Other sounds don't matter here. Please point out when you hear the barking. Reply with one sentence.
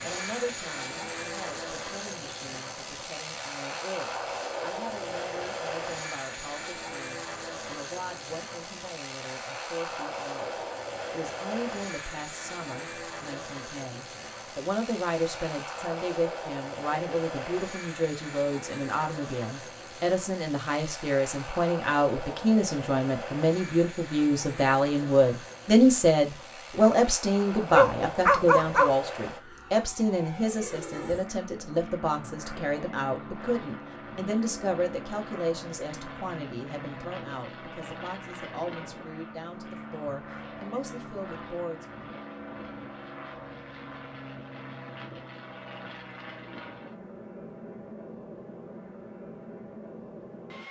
You can hear the barking from 27.7 to 28.9 s.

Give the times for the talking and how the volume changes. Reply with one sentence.
The talking can be heard from 0.0 to 41.9 s, getting louder then quieter.